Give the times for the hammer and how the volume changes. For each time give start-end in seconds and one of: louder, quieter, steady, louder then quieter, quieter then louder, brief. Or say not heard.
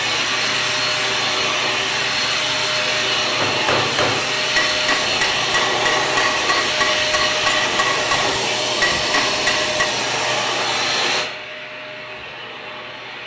3.4-9.9 steady.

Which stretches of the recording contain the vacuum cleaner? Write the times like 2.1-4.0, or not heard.
0.0-13.2.